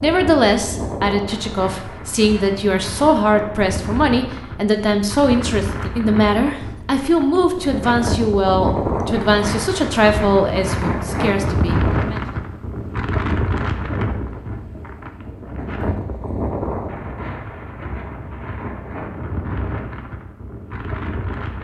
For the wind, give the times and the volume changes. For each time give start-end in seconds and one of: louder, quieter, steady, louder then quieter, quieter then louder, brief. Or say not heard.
0.0-21.5 louder then quieter.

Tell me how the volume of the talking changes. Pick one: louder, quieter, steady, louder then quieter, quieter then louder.
steady.